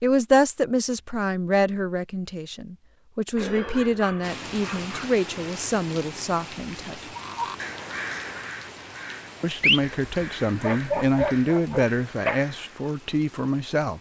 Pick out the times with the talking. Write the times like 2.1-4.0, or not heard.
0.0-7.0, 9.4-13.9.